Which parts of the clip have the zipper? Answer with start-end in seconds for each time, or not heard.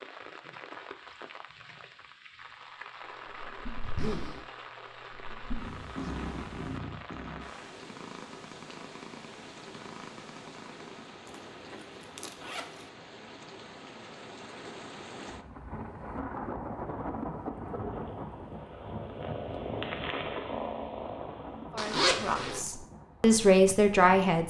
3.7-4.5, 11.2-12.8, 21.8-22.6.